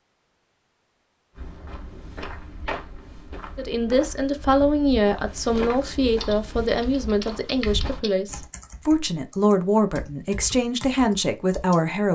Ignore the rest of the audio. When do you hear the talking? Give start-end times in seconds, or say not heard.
3.5-12.1.